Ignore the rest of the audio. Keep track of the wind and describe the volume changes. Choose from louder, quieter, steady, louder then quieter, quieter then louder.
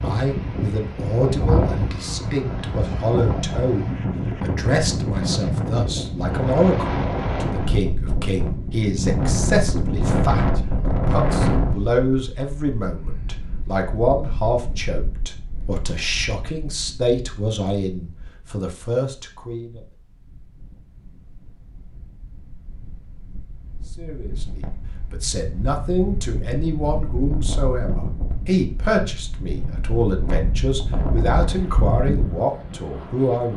quieter then louder.